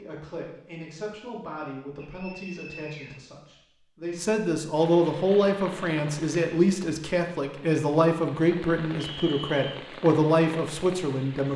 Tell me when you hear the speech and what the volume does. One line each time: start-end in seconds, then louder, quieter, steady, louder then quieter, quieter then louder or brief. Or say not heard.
0.0-11.5 louder.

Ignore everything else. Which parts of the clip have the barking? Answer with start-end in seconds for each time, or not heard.
not heard.